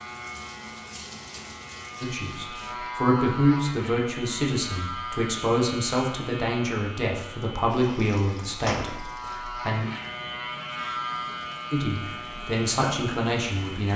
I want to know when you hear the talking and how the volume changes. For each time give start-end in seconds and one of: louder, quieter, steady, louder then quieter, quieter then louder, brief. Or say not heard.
2.0-9.8 quieter
11.7-13.9 brief.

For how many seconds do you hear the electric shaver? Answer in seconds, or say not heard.
14 s.